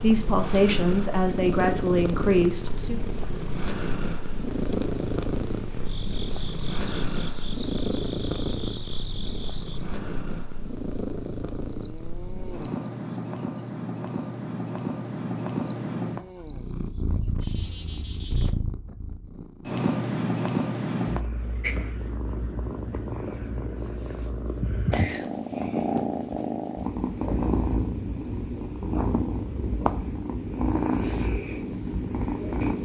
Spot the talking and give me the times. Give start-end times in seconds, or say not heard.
0.0-3.0.